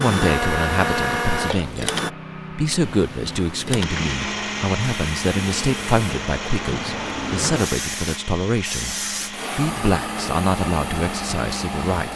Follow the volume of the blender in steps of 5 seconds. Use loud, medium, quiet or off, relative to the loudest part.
loud, medium, medium.